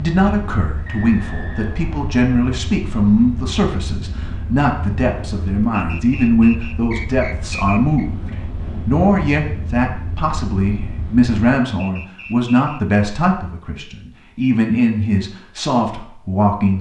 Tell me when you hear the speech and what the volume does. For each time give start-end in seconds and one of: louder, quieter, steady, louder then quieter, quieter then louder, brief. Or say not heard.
0.0-16.7 steady.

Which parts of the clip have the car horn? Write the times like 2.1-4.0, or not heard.
not heard.